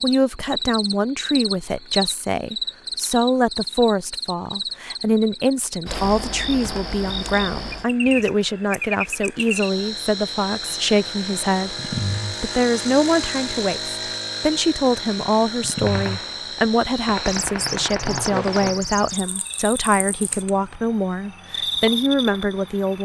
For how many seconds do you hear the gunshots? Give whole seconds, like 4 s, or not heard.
3 s.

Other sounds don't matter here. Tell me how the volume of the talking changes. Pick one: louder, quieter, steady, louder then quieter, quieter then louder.
steady.